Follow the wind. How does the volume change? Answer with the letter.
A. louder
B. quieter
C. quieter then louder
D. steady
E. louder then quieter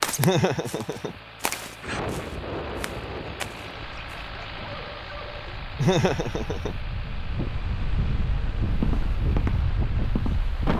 C.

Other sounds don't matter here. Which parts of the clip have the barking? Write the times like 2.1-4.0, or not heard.
3.8-5.6.